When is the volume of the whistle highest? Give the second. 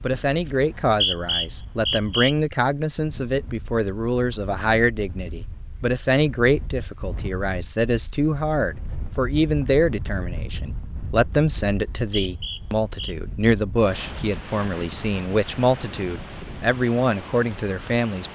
1 s.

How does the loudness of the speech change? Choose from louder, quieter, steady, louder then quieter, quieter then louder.
steady.